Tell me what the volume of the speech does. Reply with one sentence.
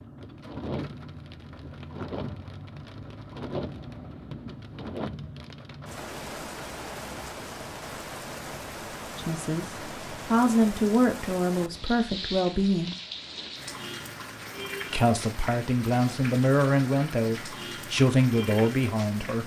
The volume of the speech stays about the same.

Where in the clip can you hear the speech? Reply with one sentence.
You can hear the speech from 9.2 to 12.9 s and from 14.9 to 19.4 s.